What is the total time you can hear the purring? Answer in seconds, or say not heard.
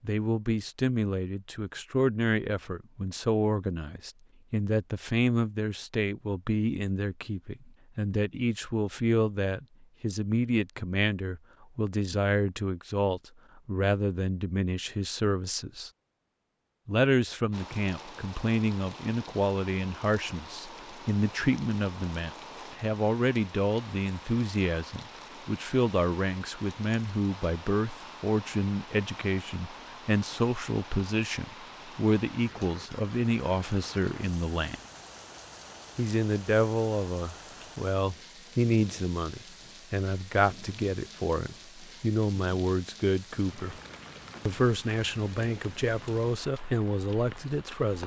not heard.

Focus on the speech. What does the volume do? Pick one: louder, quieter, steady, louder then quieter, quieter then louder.
steady.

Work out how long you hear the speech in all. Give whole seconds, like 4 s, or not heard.
45 s.